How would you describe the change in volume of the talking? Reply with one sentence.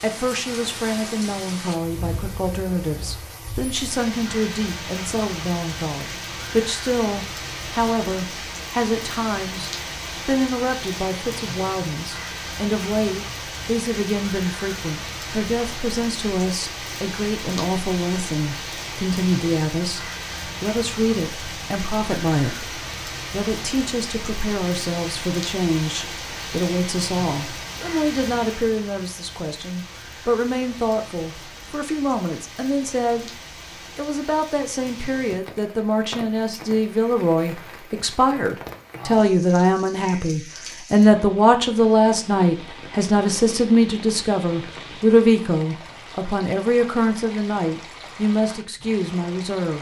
The volume of the talking goes up.